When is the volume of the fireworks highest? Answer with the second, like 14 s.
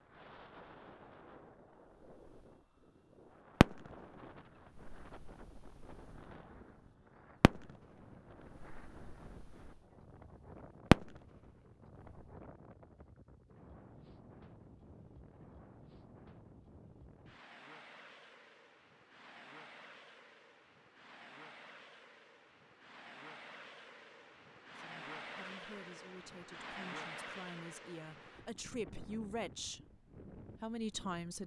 11 s.